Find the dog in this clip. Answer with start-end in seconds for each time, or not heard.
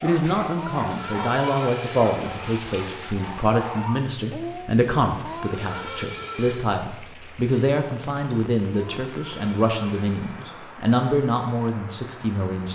0.0-4.8.